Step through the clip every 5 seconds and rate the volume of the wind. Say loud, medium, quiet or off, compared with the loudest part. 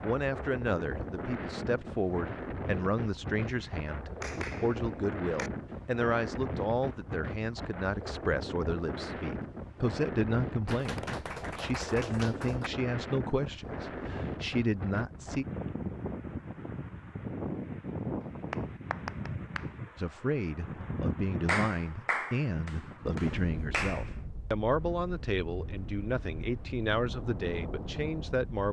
loud, loud, loud, loud, loud, medium.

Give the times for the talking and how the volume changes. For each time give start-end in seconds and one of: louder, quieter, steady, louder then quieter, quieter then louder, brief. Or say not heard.
0.0-15.4 steady
19.9-28.6 steady.